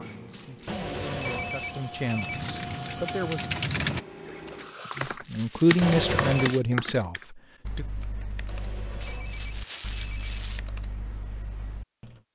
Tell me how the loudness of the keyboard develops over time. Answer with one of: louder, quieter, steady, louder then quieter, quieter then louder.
quieter.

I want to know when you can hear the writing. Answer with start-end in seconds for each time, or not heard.
not heard.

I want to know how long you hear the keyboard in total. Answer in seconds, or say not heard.
10 s.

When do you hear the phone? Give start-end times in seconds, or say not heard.
0.7-2.4, 5.8-6.5, 8.4-10.4.